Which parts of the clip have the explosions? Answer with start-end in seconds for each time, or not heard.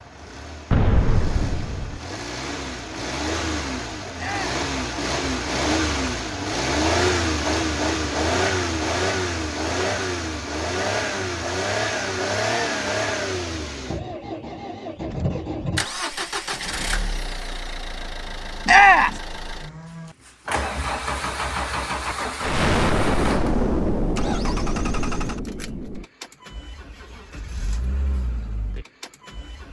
0.7-2.0, 22.4-26.1.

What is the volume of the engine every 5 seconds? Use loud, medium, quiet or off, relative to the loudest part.
medium, loud, loud, medium, medium, quiet.